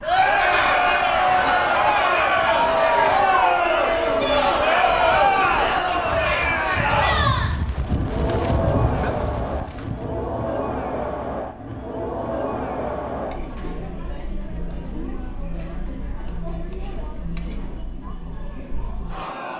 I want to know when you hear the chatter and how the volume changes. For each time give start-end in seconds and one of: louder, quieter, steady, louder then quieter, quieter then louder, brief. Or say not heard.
0.0-19.5 quieter.